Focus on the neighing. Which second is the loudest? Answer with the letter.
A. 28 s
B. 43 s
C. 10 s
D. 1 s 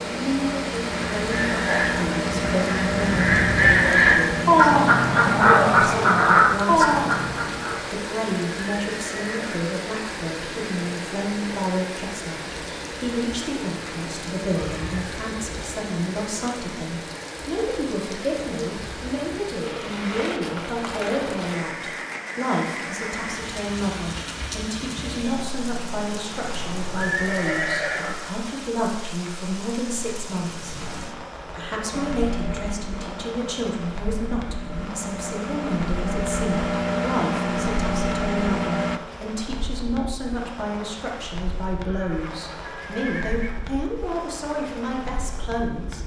A.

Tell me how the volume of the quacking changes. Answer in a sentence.
The volume of the quacking goes up.